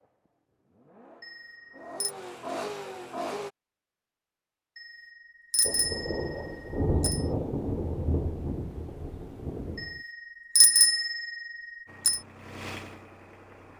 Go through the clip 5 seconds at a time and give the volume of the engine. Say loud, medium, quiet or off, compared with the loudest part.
loud, off, medium.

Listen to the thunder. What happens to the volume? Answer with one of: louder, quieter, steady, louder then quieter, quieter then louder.
louder then quieter.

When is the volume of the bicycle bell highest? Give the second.
11 s.